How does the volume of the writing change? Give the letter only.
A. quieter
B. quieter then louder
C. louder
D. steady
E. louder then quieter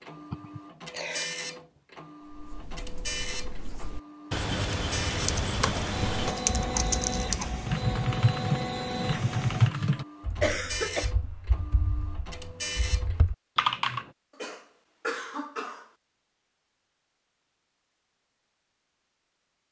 E.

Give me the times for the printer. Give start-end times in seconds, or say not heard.
0.0-13.2.